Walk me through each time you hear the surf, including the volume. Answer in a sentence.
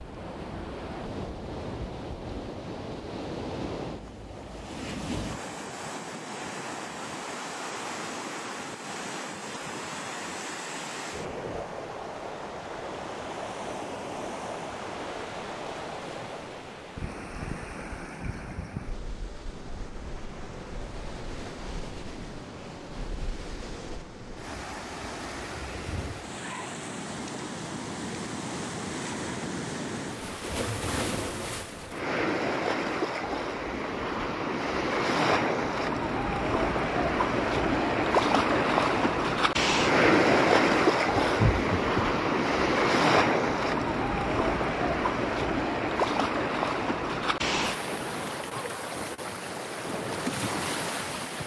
The surf can be heard from 0.0 to 51.4 s, getting louder.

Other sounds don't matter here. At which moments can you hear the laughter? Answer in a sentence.
You can hear the laughter from 41.2 to 42.2 s.